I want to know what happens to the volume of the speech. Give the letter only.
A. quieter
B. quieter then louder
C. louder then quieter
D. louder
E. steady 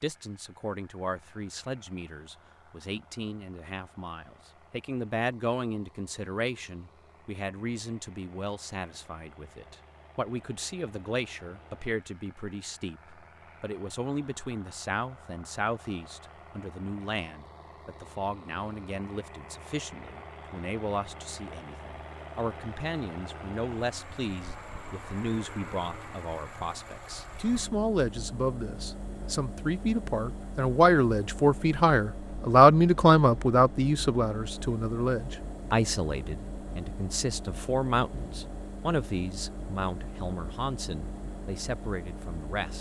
C.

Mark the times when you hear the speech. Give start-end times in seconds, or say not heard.
0.0-42.7.